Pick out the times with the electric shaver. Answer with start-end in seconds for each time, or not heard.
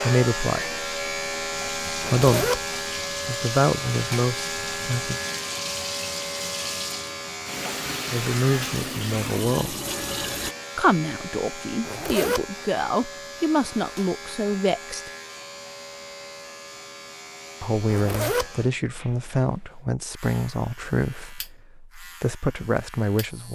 0.0-23.5.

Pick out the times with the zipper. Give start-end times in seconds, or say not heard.
2.0-2.6, 11.8-12.4, 17.9-18.5.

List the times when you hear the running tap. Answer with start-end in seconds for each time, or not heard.
1.5-10.6.